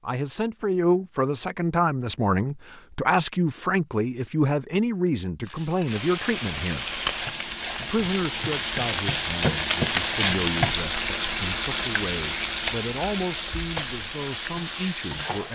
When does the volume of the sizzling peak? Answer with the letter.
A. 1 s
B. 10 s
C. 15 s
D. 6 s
B.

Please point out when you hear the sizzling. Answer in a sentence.
You can hear the sizzling from 5.4 to 15.5 s.